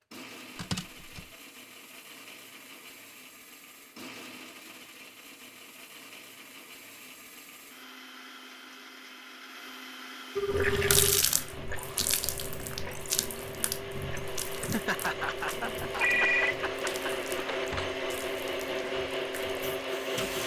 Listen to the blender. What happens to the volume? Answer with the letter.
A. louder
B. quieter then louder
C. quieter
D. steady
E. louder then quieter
A.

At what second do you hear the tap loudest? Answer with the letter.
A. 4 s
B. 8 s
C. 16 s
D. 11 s
D.